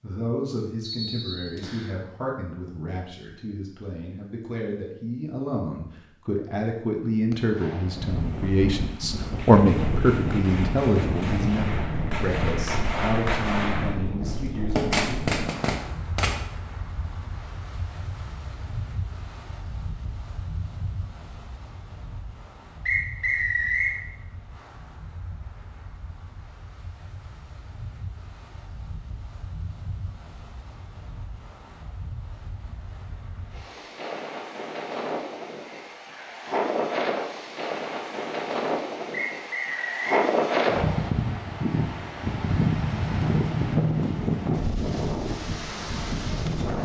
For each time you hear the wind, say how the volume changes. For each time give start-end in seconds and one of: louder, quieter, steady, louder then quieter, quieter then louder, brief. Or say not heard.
7.8-46.7 quieter then louder.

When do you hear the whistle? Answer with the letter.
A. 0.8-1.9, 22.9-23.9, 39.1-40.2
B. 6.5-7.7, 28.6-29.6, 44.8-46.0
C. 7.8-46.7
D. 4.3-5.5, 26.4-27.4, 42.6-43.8
A.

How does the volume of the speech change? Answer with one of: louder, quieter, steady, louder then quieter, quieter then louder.
louder then quieter.